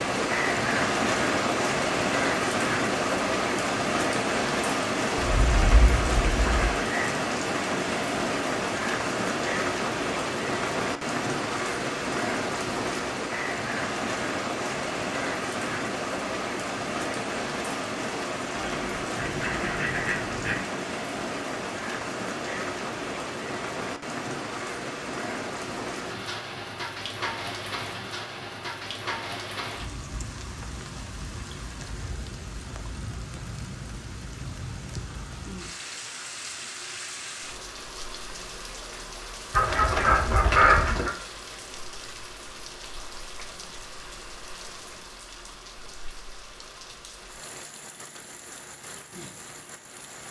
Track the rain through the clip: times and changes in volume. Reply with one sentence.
You can hear the rain from 0.0 to 50.2 s, getting quieter.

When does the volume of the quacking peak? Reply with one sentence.
The volume of the quacking peaks at 41 seconds.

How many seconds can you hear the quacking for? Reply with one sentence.
You can hear the quacking for 5 seconds altogether.